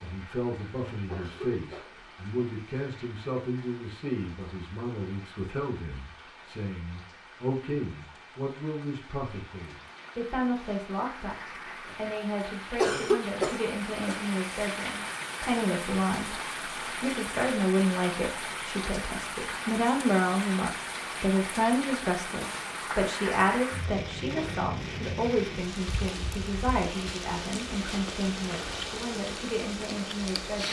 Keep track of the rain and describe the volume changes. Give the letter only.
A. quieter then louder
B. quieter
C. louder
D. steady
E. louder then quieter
C.